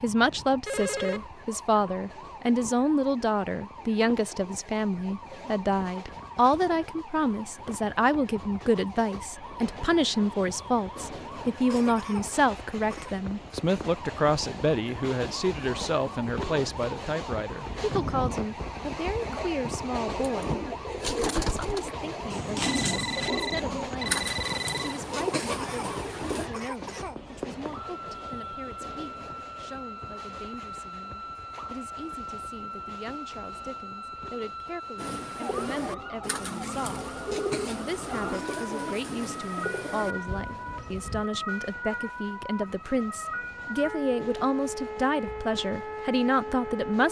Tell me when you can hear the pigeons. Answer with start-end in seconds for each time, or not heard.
20.1-26.5, 35.0-41.2.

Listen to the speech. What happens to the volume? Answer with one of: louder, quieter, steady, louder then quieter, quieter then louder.
quieter then louder.